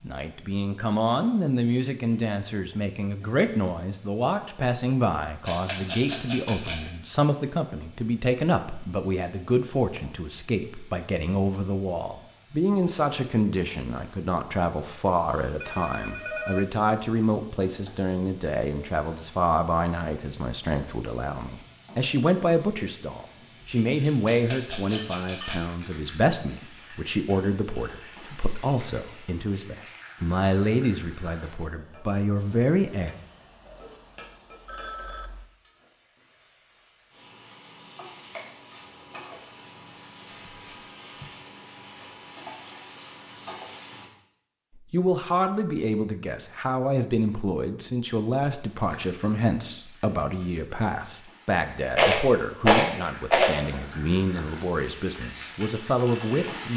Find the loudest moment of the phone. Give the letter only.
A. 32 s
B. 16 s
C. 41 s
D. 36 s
B.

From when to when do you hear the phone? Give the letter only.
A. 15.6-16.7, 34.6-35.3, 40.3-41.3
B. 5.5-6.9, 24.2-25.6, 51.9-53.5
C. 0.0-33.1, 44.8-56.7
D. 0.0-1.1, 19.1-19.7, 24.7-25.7
A.